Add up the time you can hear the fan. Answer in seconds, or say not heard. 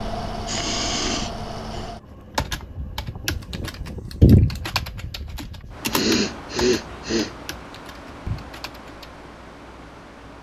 10 s.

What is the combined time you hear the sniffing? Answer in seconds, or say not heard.
3 s.